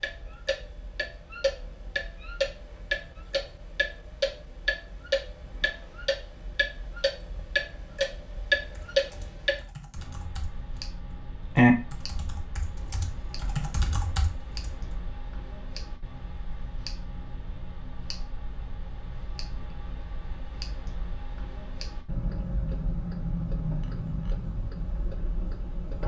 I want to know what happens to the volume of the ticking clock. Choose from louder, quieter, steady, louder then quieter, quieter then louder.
quieter then louder.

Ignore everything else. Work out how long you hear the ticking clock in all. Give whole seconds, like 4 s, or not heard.
26 s.